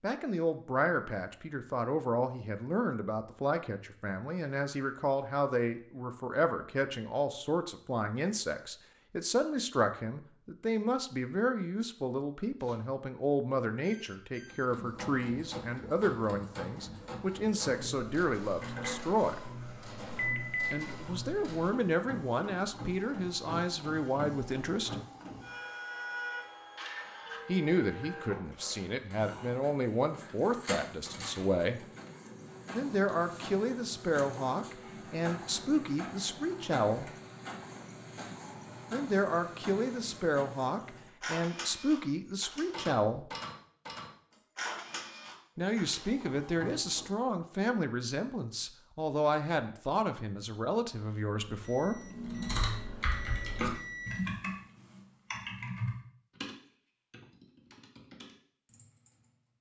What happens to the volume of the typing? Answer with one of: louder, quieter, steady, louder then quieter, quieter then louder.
quieter.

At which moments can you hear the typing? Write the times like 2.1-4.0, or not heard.
52.0-59.5.